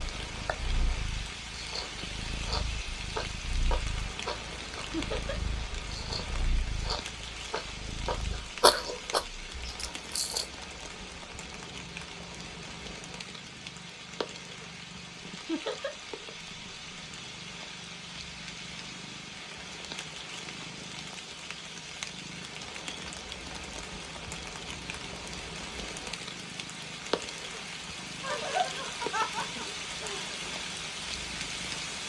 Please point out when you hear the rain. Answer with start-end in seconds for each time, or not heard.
0.0-32.0.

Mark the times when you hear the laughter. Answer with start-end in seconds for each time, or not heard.
4.9-5.4, 15.4-15.9, 28.2-30.5.